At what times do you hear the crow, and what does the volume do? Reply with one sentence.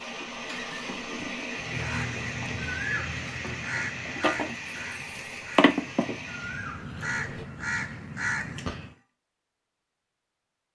The crow can be heard from 1.6 to 8.9 s, getting quieter then louder.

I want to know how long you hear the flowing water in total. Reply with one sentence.
You can hear the flowing water for 7 seconds altogether.